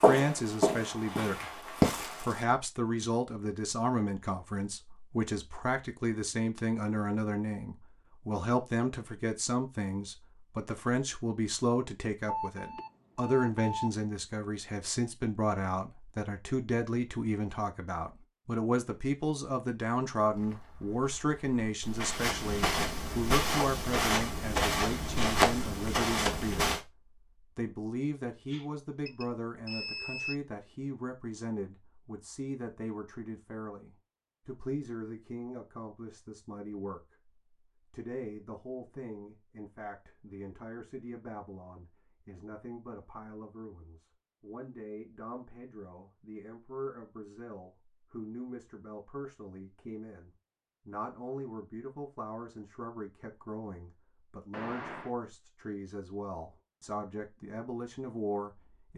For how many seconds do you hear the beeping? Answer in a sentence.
The beeping can be heard for 4 seconds in total.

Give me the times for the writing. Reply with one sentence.
The writing can't be heard in this clip.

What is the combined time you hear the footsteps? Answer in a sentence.
The footsteps can be heard for 9 seconds in total.